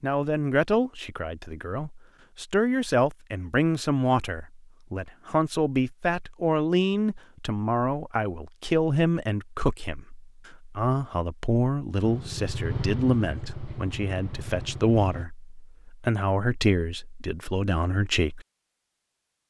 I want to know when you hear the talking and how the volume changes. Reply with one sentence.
You can hear the talking from 0.0 to 18.4 s, at a steady volume.